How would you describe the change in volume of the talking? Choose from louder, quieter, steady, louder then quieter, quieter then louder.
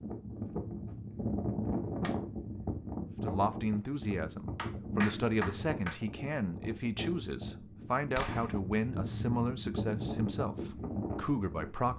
steady.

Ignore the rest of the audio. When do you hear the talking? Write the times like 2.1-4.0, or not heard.
3.2-11.9.